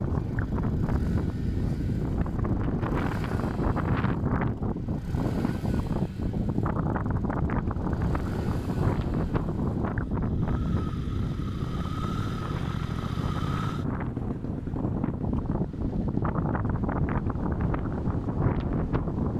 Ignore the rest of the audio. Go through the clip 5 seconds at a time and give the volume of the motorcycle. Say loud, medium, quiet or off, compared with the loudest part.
medium, medium, loud, medium.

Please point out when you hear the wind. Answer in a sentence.
The wind can be heard from 0.0 to 19.3 s.